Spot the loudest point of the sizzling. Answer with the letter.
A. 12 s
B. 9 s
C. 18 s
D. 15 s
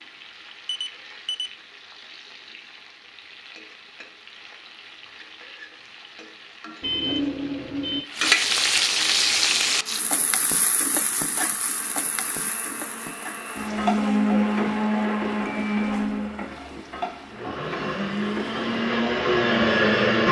B.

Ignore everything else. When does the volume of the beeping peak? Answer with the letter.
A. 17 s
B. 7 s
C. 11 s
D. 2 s
B.